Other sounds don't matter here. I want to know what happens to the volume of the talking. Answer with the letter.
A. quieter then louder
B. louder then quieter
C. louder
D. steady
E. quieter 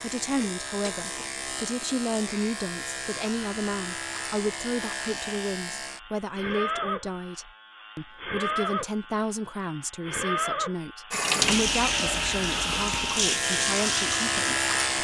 D.